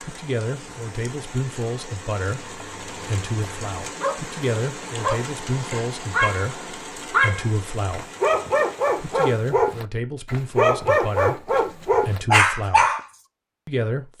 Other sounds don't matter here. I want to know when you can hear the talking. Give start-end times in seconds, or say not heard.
0.0-8.1, 9.0-12.9, 13.7-14.1.